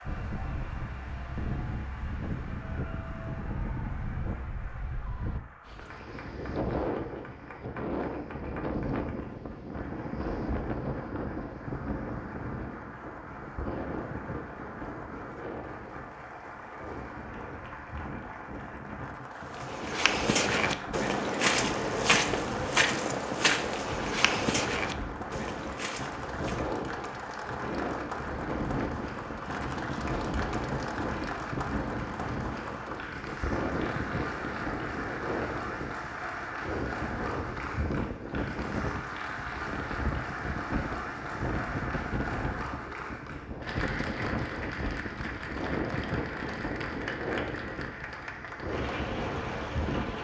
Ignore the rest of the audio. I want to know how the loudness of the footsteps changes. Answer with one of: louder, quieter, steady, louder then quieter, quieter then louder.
quieter.